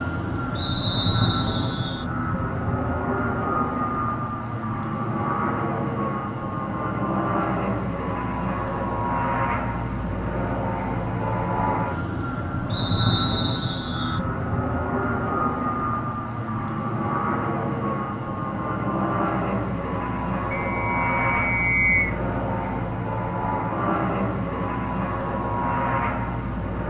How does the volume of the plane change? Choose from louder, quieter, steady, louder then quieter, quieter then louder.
steady.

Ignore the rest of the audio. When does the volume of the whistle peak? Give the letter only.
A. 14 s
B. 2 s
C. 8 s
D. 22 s
D.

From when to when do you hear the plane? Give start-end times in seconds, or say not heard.
0.0-26.8.